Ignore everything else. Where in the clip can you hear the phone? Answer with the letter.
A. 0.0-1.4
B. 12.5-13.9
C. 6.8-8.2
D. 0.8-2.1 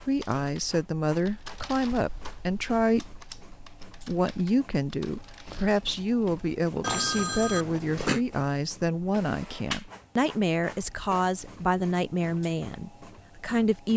C.